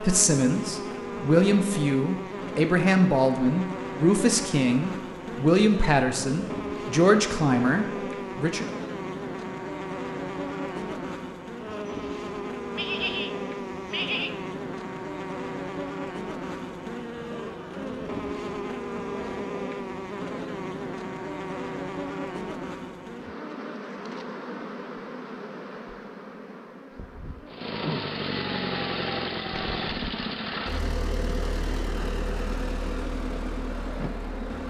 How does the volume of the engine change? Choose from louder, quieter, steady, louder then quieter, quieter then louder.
quieter.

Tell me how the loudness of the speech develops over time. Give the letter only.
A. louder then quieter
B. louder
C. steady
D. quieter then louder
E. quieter
C.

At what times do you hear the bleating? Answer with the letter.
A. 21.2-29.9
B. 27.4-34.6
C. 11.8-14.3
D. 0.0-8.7
C.